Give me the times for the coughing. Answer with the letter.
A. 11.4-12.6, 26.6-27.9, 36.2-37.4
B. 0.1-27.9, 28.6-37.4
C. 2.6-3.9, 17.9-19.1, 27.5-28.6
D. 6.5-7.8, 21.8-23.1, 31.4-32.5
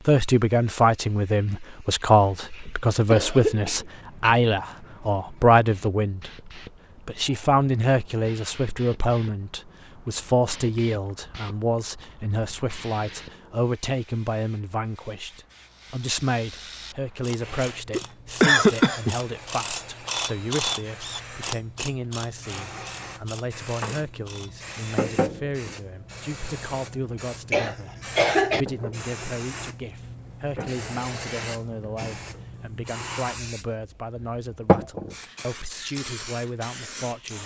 C.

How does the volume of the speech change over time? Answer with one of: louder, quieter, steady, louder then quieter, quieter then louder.
quieter.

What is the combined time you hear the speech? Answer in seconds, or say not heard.
37 s.